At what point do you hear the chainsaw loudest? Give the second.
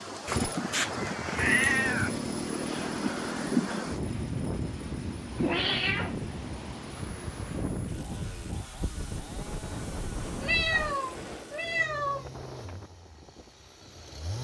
2 s.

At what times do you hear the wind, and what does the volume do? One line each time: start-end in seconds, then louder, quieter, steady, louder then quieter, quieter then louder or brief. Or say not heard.
0.0-14.3 quieter.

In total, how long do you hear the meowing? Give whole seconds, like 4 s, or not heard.
5 s.